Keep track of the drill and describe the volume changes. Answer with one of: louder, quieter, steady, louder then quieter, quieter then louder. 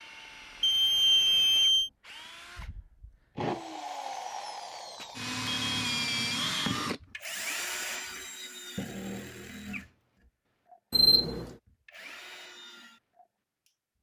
louder then quieter.